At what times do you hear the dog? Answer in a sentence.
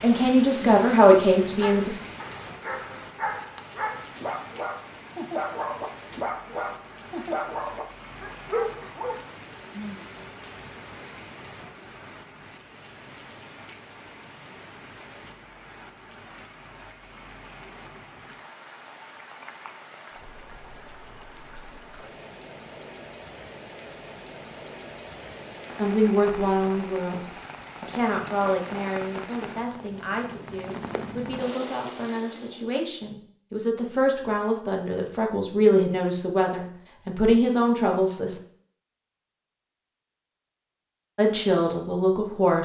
The dog can be heard from 1.6 to 9.2 s.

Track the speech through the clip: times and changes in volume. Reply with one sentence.
You can hear the speech briefly from 0.0 to 1.9 s; from 25.8 to 38.4 s, getting quieter then louder; and briefly from 41.1 to 42.6 s.